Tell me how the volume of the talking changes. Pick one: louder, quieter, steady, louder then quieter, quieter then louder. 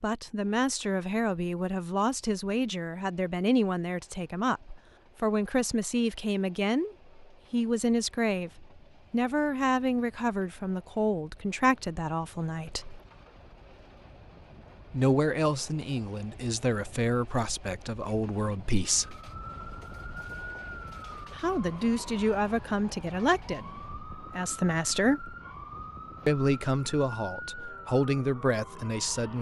steady.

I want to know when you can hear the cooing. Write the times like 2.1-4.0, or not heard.
not heard.